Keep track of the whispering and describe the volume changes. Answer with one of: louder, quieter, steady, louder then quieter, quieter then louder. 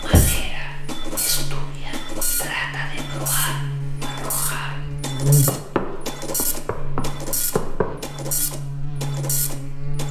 louder then quieter.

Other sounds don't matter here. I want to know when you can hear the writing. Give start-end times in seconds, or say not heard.
not heard.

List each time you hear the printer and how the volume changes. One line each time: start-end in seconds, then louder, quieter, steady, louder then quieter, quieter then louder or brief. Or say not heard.
0.0-10.0 steady.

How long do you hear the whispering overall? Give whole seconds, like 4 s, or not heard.
5 s.